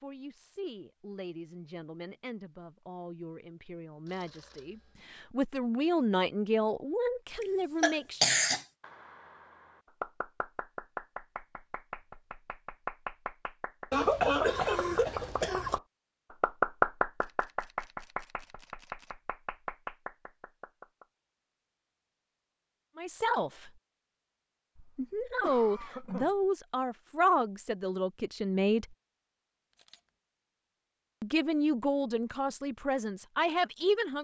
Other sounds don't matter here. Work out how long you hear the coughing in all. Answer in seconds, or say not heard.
5 s.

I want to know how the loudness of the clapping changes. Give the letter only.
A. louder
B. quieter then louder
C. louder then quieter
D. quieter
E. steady
C.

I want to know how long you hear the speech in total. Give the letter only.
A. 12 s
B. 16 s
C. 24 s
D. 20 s
B.